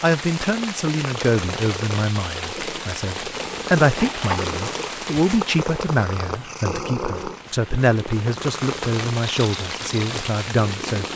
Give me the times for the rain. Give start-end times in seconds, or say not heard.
0.0-11.1.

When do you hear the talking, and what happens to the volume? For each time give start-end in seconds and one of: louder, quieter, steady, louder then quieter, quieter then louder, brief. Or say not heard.
0.0-11.1 steady.